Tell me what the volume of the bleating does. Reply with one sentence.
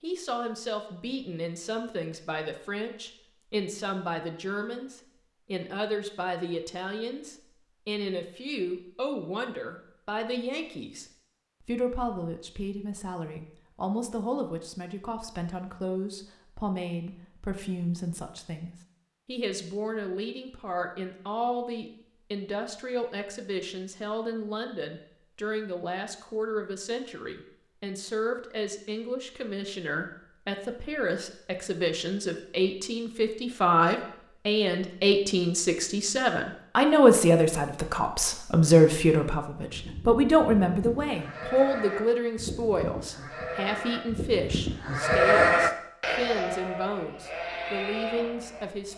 The volume of the bleating goes up, then down.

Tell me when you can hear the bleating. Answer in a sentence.
The bleating can be heard from 39.5 to 48.9 s.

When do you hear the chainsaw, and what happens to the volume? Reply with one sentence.
The chainsaw can't be heard in this clip.